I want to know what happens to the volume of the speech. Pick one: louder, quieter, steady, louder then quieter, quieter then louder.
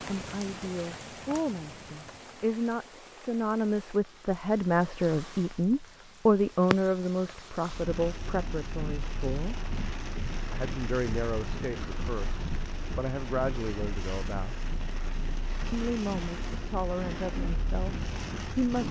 louder then quieter.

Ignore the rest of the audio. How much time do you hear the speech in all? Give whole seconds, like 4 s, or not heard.
17 s.